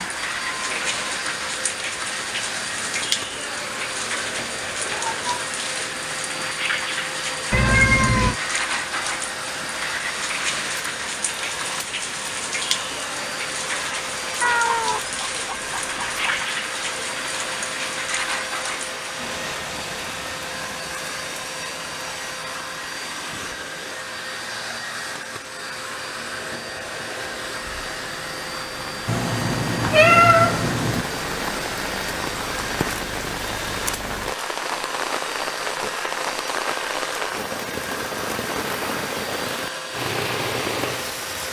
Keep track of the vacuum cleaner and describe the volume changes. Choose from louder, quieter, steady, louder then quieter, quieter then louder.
steady.